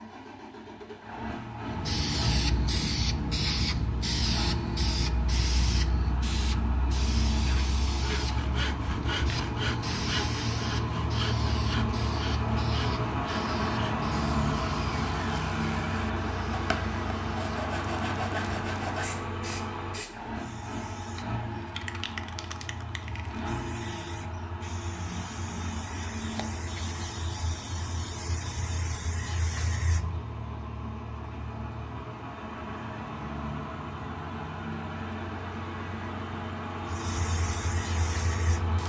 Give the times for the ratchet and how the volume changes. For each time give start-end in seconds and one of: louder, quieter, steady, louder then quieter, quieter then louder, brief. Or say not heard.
not heard.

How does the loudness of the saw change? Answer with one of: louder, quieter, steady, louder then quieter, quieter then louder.
quieter then louder.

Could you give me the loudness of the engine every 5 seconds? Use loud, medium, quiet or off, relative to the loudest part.
medium, medium, loud, loud, medium, medium, medium, medium.